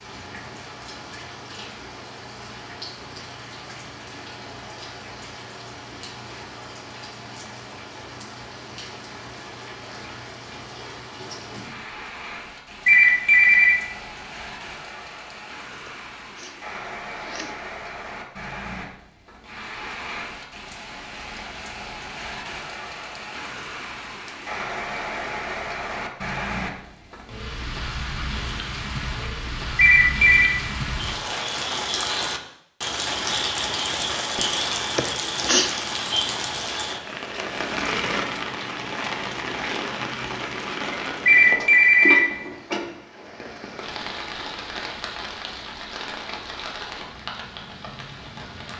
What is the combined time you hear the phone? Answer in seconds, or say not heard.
3 s.